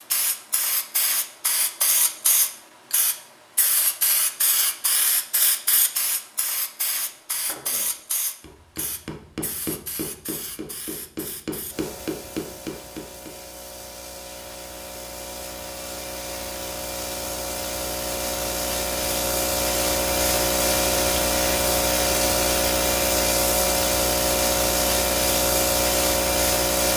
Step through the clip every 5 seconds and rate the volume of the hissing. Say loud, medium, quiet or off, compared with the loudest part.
medium, medium, quiet, medium, loud, loud.